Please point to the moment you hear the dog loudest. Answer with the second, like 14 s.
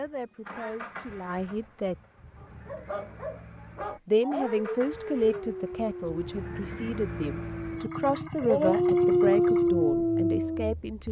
9 s.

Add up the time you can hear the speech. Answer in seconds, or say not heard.
9 s.